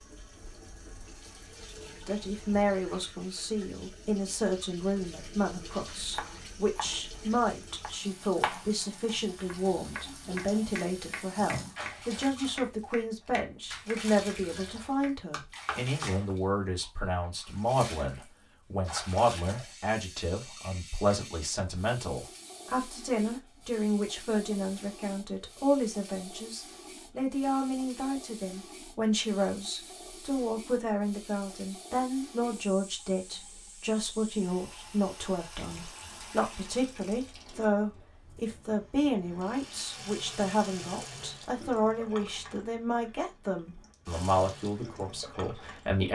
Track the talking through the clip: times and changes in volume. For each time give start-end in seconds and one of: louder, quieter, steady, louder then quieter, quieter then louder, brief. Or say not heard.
2.0-46.1 steady.